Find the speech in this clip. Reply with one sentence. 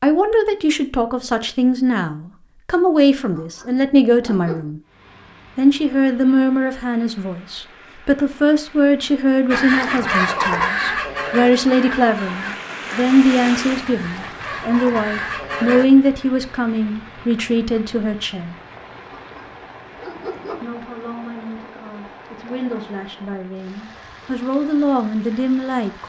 The speech can be heard from 0.0 to 4.8 s, from 5.5 to 18.6 s and from 20.5 to 26.0 s.